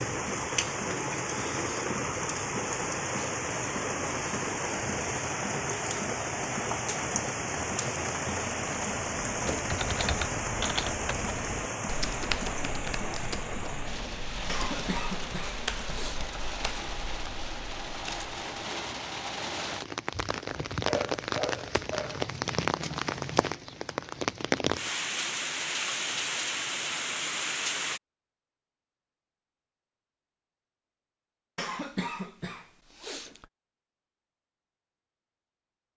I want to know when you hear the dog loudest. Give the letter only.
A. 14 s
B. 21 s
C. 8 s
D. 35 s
B.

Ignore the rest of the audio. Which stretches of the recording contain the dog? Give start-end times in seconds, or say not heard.
20.9-22.2.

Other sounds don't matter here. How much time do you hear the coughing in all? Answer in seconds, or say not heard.
4 s.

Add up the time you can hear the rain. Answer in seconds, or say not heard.
28 s.